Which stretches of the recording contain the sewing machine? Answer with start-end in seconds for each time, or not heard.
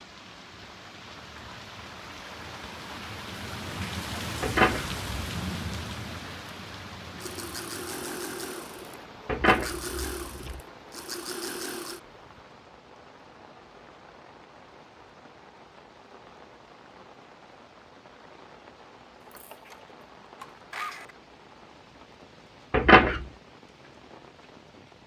7.2-12.4, 19.2-21.1.